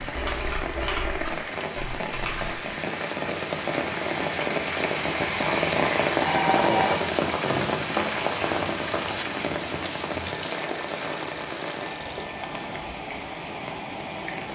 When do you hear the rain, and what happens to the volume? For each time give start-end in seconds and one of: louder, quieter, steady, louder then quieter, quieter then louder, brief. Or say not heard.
0.0-14.5 louder then quieter.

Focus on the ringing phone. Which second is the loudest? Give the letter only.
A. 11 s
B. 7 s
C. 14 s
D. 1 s
B.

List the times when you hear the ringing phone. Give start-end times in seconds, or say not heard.
0.1-1.4, 6.2-7.1, 10.2-12.8.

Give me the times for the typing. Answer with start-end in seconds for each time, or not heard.
0.0-2.6.